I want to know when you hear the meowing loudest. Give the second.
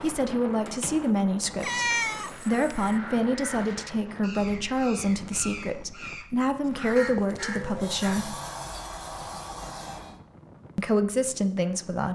2 s.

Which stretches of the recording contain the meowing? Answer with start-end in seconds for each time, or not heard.
1.6-3.0, 7.2-7.8.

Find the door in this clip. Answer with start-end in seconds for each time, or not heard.
0.7-1.1, 7.5-10.2.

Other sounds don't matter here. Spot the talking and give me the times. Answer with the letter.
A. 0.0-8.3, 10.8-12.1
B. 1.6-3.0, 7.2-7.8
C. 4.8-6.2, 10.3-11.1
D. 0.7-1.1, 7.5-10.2
A.